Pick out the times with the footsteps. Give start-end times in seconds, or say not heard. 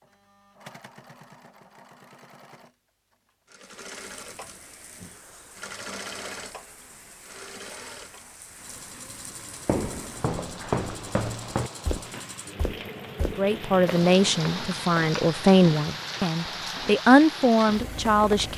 9.7-14.9.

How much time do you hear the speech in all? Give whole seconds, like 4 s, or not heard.
5 s.